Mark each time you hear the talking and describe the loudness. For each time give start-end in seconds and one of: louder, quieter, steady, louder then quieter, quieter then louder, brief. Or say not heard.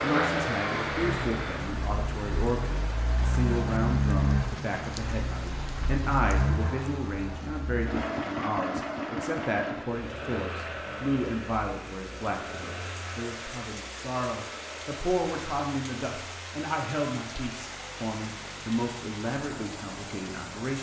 0.0-20.7 steady.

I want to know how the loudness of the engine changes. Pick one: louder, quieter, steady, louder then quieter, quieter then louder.
quieter.